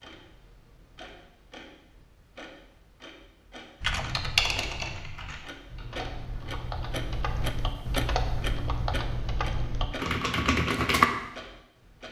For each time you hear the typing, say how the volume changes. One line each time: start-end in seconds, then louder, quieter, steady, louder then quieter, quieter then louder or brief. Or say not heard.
3.8-11.1 quieter then louder.